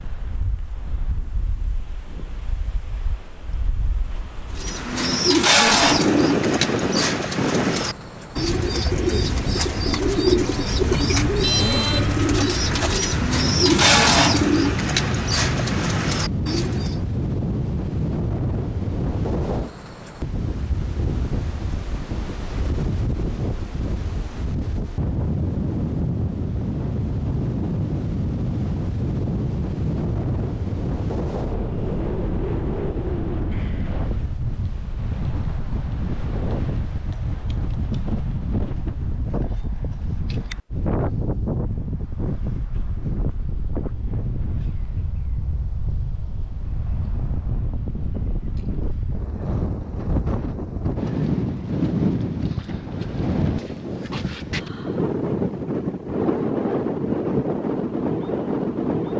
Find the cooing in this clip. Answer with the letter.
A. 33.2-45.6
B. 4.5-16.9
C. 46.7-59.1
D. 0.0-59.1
B.